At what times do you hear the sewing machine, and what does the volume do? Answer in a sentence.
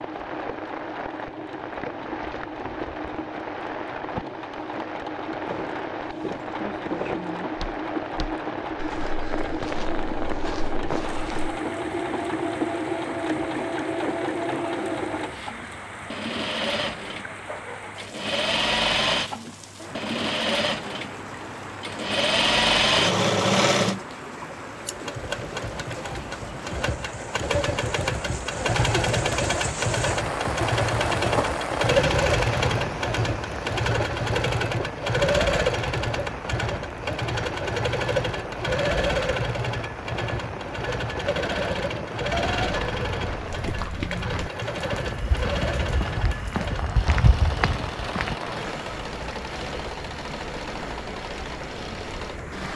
The sewing machine can be heard from 0.0 to 52.7 s, getting louder then quieter.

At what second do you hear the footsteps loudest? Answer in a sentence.
The loudest moment of the footsteps is at 47 seconds.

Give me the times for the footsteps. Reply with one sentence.
The footsteps can be heard from 5.5 to 11.6 s and from 42.6 to 48.4 s.